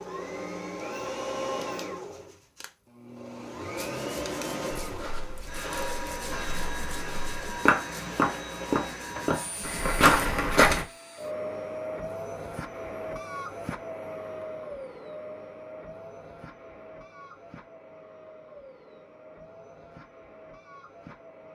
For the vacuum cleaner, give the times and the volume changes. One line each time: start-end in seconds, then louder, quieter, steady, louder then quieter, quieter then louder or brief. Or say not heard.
0.0-21.4 quieter.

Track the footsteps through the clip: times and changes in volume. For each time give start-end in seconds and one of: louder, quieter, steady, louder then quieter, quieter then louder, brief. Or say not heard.
4.8-10.8 louder.